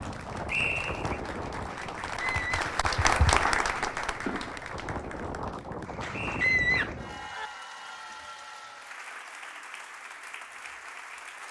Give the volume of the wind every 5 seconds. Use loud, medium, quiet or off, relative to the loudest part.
loud, loud, off.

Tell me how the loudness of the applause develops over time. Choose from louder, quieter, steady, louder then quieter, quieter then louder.
louder then quieter.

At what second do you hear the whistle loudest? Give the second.
1 s.